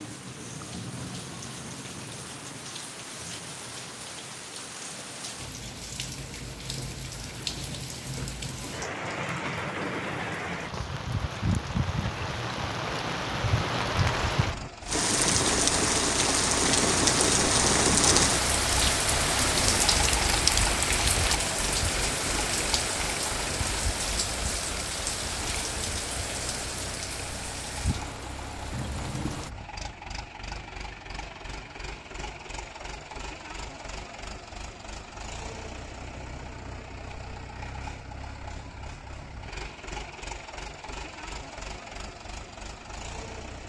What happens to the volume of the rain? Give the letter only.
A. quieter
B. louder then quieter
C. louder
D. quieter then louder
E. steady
B.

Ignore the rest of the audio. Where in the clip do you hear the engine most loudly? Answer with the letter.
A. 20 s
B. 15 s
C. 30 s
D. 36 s
A.